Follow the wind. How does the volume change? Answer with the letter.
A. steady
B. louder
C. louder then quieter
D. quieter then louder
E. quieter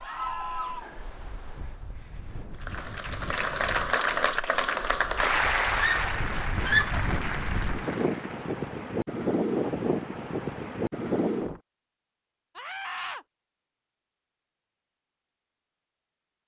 B.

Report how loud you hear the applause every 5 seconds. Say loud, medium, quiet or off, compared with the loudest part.
loud, loud, off, off.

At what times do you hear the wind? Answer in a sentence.
The wind can be heard from 0.0 to 11.6 s.